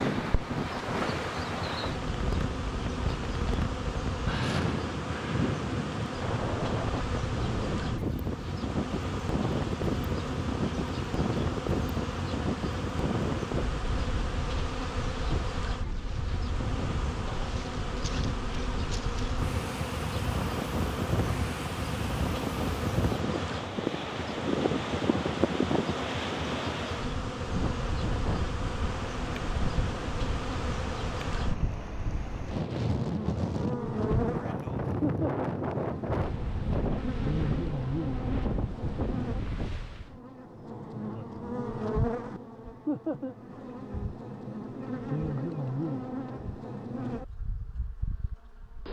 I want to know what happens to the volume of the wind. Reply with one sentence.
The volume of the wind stays about the same.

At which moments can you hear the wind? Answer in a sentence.
The wind can be heard from 0.0 to 40.2 s.